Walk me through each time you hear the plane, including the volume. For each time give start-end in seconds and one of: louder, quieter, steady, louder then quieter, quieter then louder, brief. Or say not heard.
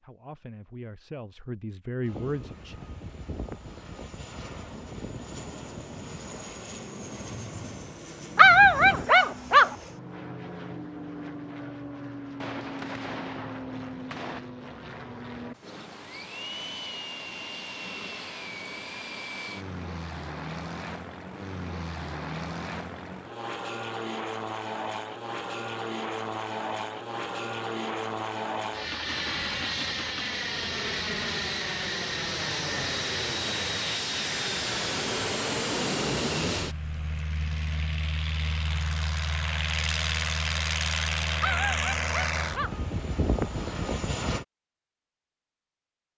2.0-44.5 louder.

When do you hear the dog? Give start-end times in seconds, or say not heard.
8.3-9.8, 41.4-42.8.